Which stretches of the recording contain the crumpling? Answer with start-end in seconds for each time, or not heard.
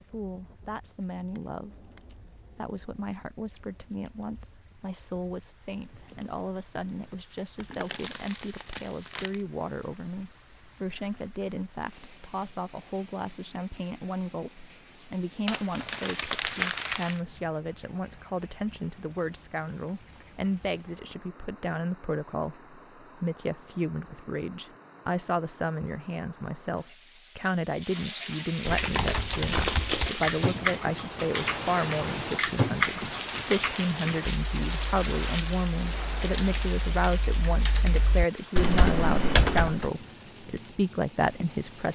7.6-9.3, 15.4-17.2, 28.6-30.4.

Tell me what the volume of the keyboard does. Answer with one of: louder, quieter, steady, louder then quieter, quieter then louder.
quieter then louder.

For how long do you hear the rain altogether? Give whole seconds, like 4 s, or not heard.
42 s.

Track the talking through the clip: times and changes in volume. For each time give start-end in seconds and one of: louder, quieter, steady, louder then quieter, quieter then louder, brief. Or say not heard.
0.1-41.9 louder.